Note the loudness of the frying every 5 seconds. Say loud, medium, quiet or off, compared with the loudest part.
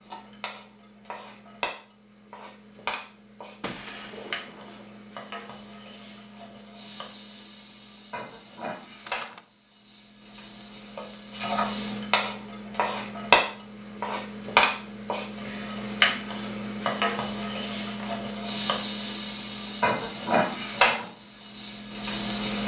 quiet, quiet, loud, loud, loud.